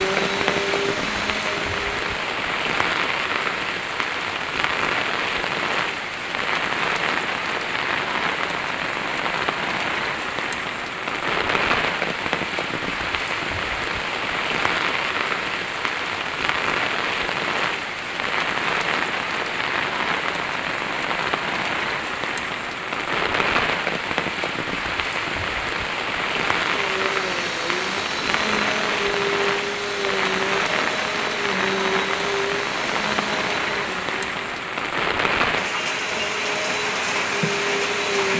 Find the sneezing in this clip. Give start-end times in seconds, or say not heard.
not heard.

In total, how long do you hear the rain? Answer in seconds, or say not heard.
38 s.